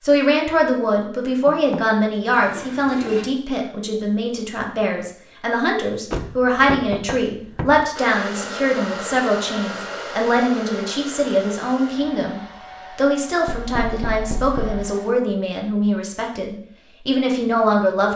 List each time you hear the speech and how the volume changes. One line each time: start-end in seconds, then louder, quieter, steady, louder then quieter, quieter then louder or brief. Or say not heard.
0.0-18.1 steady.